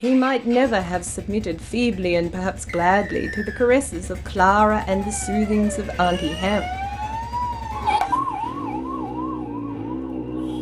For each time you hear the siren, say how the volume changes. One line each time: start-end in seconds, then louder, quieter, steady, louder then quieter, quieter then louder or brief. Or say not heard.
4.8-10.5 louder then quieter.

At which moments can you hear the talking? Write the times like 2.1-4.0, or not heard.
0.0-6.7.